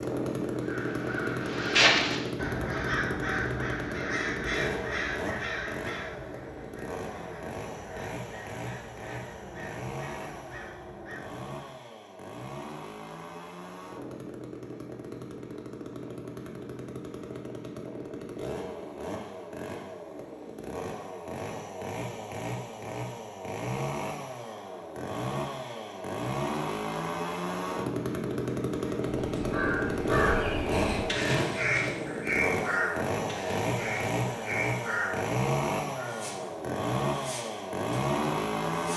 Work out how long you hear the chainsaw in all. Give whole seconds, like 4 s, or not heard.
39 s.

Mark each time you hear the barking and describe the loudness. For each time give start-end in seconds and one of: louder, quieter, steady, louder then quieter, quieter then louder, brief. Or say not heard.
not heard.